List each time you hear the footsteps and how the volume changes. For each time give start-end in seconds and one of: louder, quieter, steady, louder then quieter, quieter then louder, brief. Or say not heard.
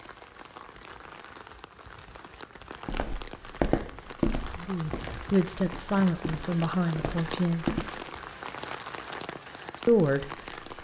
2.9-8.1 quieter.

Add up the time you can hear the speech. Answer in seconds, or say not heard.
4 s.